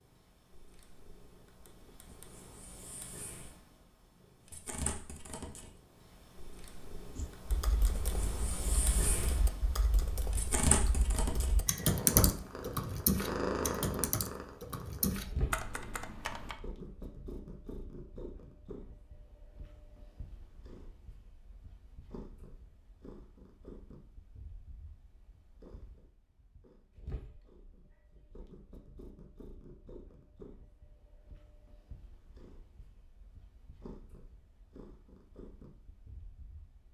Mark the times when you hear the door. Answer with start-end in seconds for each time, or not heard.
not heard.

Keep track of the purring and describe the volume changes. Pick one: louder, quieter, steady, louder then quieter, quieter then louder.
louder then quieter.